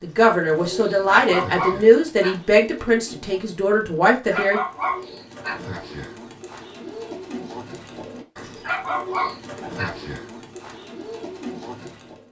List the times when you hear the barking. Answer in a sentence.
You can hear the barking from 1.2 to 2.4 s, from 4.3 to 5.6 s and from 8.6 to 9.9 s.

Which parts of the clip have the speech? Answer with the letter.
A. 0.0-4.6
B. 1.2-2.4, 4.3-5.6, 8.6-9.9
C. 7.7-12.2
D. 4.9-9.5
A.